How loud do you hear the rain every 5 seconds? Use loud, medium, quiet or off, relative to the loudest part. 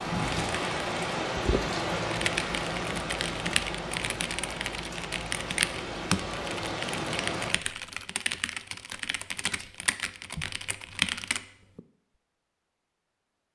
loud, loud, off.